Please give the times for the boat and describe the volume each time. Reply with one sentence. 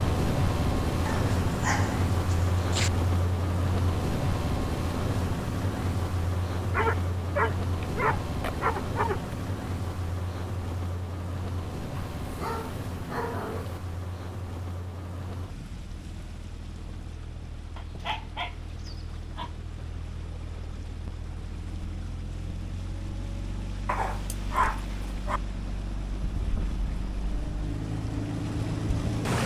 You can hear the boat from 0.0 to 29.4 s, getting quieter then louder.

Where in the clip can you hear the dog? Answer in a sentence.
The dog can be heard from 1.1 to 2.9 s, from 6.7 to 9.3 s, from 11.9 to 13.8 s, from 17.8 to 19.5 s and from 23.9 to 25.4 s.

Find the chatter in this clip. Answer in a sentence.
You can't hear the chatter here.